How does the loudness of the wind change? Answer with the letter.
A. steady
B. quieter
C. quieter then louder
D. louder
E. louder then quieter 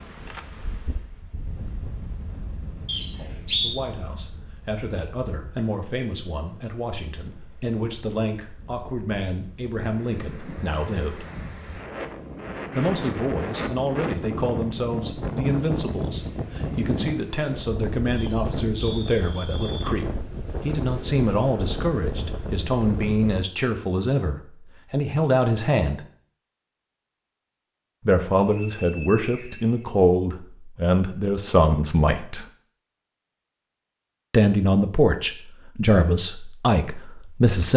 C.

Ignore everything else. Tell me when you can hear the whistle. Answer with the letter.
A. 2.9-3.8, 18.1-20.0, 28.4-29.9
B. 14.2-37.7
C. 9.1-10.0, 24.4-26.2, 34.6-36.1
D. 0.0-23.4
A.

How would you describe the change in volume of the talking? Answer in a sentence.
The loudness of the talking goes up.